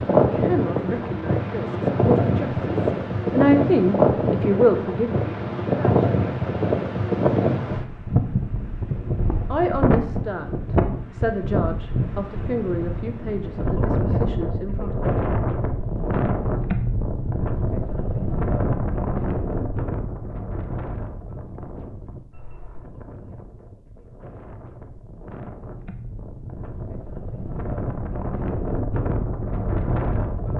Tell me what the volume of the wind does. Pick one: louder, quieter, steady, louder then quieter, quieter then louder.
quieter.